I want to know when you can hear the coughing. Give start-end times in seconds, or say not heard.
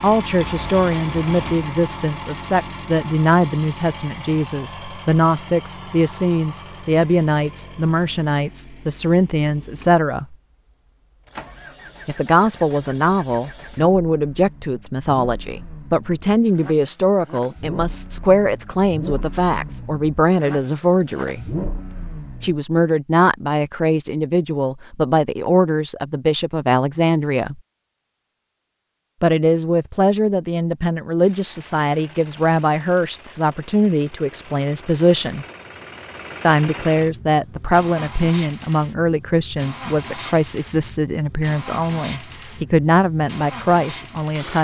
not heard.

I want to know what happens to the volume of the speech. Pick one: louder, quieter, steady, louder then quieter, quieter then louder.
steady.